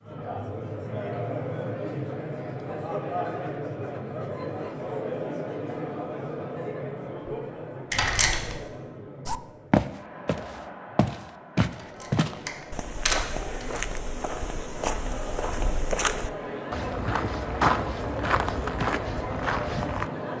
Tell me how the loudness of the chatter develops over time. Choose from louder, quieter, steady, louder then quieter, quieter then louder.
quieter then louder.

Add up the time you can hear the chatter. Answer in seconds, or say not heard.
20 s.